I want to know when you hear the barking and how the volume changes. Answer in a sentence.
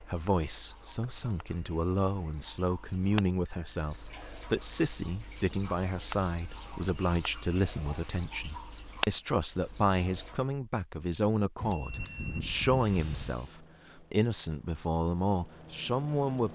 The barking can't be heard in this clip.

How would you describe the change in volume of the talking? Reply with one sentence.
The volume of the talking stays about the same.